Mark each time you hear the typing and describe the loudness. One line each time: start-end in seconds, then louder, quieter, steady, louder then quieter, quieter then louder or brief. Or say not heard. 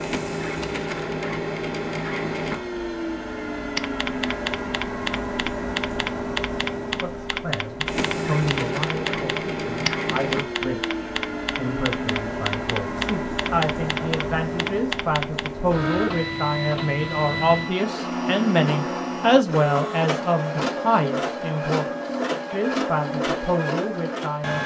3.8-15.7 steady.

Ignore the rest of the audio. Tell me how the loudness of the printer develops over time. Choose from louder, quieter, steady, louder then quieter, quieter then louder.
steady.